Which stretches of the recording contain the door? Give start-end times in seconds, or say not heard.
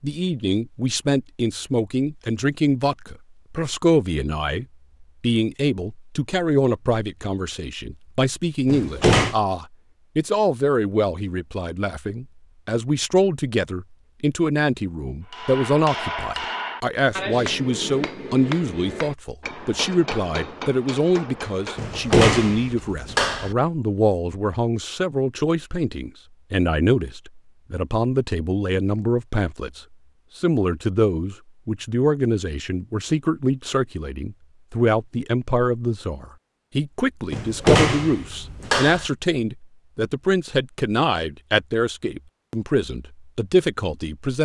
8.7-9.3, 21.8-23.6, 37.3-39.1.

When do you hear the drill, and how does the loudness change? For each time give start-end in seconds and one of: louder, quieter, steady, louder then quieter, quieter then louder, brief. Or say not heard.
not heard.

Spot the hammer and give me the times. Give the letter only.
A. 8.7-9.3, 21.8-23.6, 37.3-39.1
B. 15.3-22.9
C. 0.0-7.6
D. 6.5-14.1
B.